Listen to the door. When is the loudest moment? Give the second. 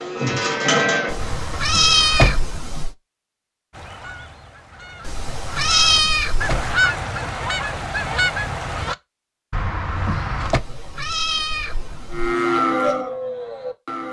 2 s.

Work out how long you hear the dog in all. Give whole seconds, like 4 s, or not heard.
not heard.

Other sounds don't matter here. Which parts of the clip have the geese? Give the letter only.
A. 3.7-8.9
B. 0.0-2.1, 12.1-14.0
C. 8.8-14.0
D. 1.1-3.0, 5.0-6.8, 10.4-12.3
A.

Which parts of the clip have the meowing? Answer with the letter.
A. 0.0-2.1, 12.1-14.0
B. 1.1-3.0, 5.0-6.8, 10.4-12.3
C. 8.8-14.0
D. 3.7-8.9
B.